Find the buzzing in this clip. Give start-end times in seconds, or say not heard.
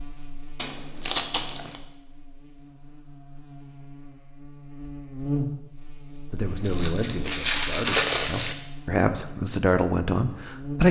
0.0-10.8.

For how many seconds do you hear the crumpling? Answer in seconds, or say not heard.
3 s.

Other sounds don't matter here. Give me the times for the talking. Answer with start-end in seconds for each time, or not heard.
6.3-10.8.